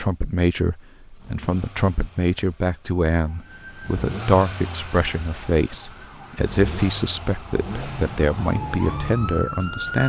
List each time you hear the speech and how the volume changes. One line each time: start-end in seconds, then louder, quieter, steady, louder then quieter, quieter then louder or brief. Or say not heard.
0.0-10.0 steady.